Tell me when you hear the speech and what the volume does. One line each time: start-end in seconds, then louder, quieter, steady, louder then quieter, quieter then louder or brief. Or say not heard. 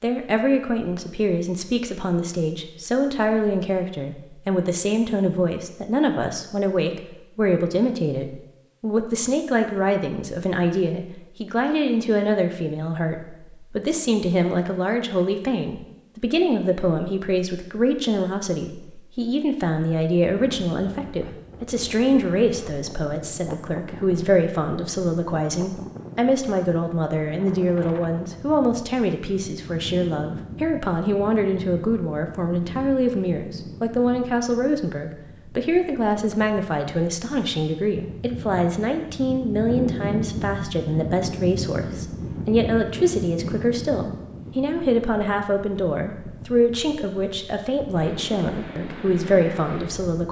0.0-50.2 steady.